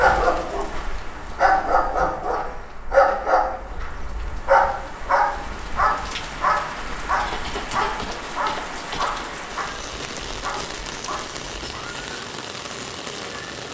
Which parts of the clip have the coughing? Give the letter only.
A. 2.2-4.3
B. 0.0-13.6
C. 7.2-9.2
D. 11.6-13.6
C.